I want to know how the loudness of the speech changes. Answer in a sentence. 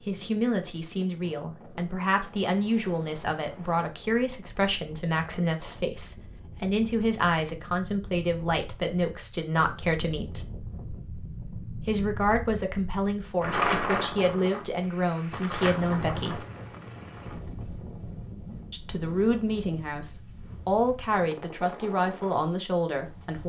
The loudness of the speech stays about the same.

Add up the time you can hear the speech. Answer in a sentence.
You can hear the speech for 20 seconds altogether.